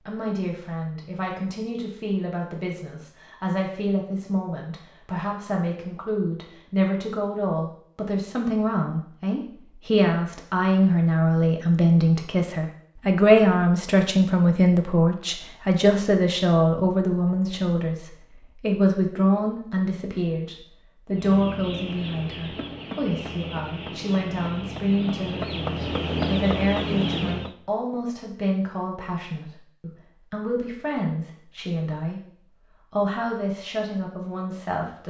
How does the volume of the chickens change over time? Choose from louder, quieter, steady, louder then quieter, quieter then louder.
louder.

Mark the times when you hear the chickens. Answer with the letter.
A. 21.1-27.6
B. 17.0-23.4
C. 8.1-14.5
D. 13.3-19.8
A.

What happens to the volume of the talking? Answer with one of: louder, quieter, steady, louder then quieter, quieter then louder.
louder then quieter.